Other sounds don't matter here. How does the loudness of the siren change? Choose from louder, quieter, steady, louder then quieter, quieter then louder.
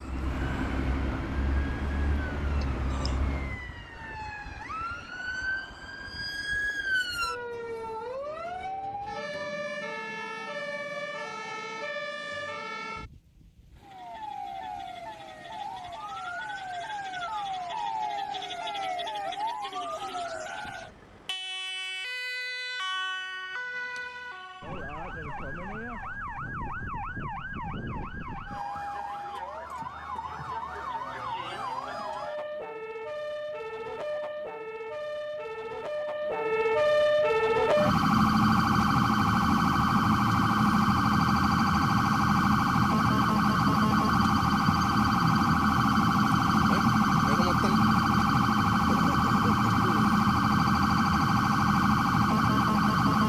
louder.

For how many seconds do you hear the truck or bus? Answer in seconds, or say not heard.
4 s.